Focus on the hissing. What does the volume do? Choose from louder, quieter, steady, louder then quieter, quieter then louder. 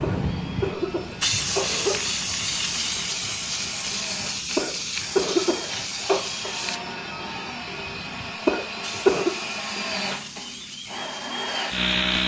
quieter.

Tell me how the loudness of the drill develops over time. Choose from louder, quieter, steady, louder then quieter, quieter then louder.
louder.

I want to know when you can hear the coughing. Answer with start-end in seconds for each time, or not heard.
0.0-1.9, 4.5-6.2, 8.4-9.3.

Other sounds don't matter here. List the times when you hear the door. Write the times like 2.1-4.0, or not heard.
6.4-7.5.